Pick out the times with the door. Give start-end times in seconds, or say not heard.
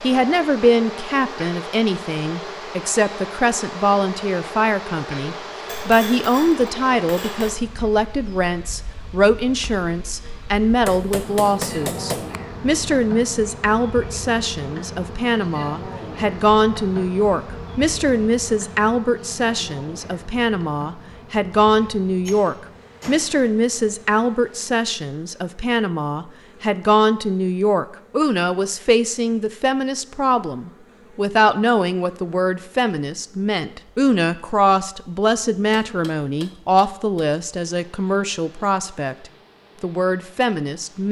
not heard.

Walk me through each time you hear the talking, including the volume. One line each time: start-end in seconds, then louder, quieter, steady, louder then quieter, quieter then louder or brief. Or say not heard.
0.0-41.0 steady.